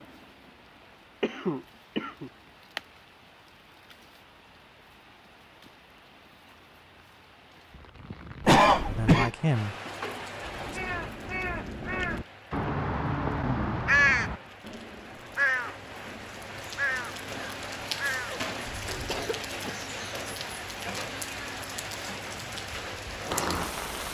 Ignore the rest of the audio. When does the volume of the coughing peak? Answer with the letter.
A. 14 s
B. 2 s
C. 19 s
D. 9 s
D.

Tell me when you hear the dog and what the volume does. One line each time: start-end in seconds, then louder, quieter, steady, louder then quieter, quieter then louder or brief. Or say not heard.
not heard.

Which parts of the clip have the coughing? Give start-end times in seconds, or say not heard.
1.2-2.3, 8.4-9.3, 18.3-20.2.